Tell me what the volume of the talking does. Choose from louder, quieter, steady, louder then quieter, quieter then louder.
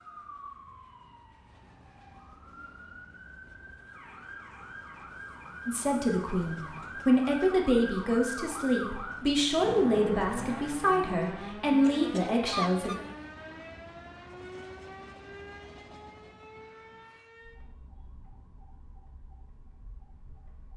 steady.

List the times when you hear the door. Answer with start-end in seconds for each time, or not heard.
not heard.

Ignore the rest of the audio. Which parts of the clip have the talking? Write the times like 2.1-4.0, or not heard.
5.7-12.9.